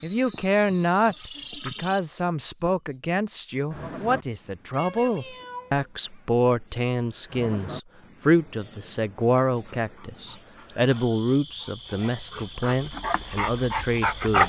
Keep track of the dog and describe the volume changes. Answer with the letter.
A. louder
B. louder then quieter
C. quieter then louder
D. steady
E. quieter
A.